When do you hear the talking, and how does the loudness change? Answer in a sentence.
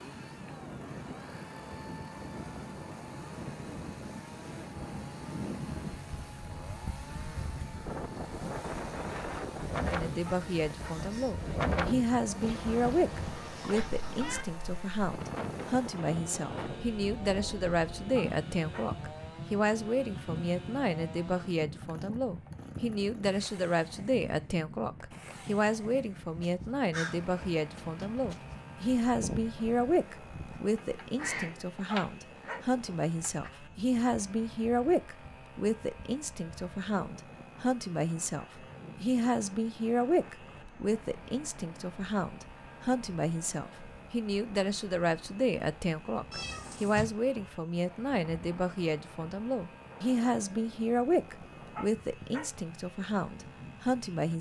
The talking can be heard from 9.8 to 54.3 s, at a steady volume.